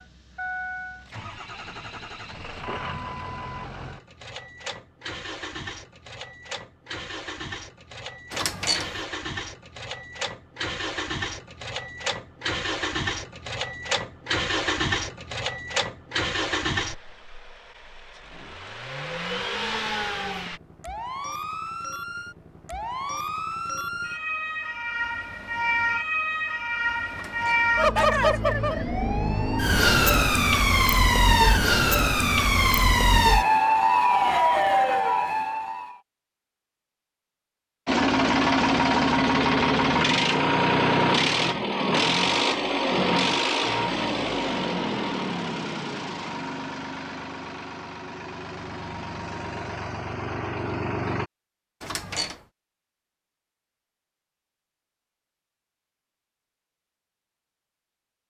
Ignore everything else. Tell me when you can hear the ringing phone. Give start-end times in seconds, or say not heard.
not heard.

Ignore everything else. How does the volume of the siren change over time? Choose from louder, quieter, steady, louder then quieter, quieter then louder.
louder.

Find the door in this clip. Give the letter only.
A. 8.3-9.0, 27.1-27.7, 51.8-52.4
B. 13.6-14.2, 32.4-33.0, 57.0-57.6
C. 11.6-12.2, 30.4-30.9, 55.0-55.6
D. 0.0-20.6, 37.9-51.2
A.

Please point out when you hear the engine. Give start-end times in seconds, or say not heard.
0.0-20.6, 37.9-51.2.